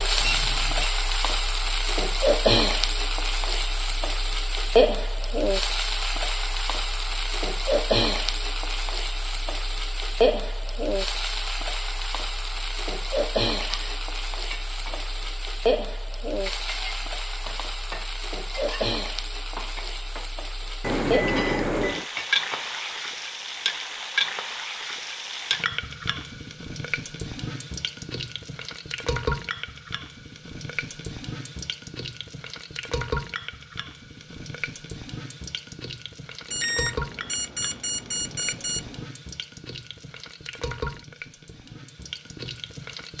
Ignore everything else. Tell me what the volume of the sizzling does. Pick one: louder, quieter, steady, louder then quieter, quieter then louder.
quieter.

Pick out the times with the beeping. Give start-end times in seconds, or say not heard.
0.2-0.9, 20.8-22.1, 36.5-39.0.